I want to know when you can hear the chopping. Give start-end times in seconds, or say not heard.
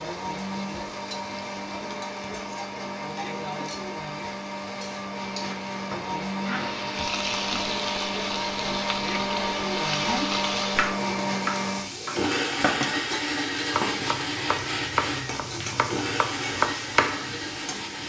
10.1-17.6.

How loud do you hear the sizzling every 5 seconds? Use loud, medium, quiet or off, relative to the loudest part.
medium, loud, loud, loud.